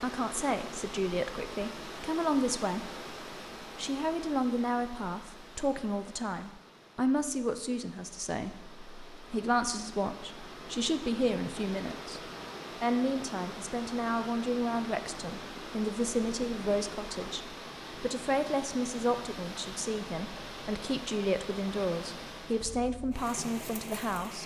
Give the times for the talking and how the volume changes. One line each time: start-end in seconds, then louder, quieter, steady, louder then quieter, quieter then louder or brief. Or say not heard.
0.0-24.4 steady.